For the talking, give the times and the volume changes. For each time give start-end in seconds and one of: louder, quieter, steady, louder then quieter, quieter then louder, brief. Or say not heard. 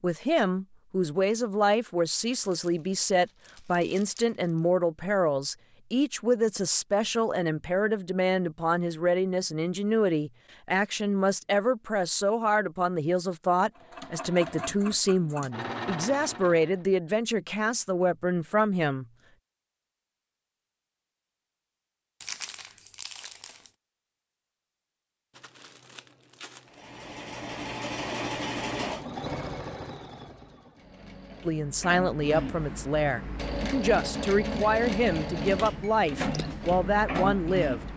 0.0-19.1 steady
31.4-37.8 steady.